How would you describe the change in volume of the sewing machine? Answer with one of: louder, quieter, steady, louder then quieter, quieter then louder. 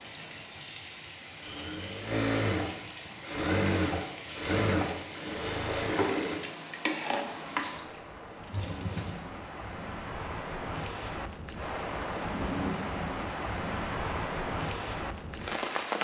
louder then quieter.